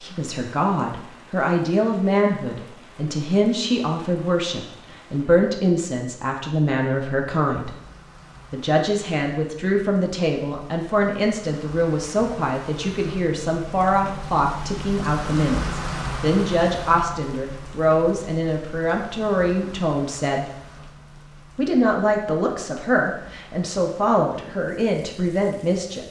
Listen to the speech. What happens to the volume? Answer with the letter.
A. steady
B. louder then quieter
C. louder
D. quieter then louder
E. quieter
A.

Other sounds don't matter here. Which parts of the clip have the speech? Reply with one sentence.
The speech can be heard from 0.0 to 7.7 s, from 8.5 to 20.4 s and from 21.6 to 26.0 s.